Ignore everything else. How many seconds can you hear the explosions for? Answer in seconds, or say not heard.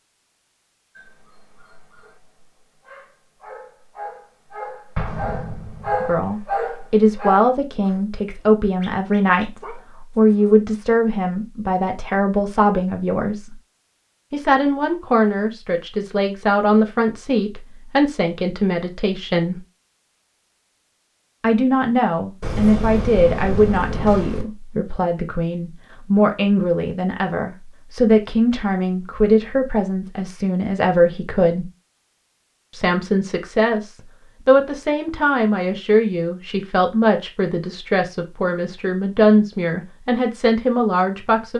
3 s.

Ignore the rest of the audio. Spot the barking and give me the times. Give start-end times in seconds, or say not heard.
0.9-10.6.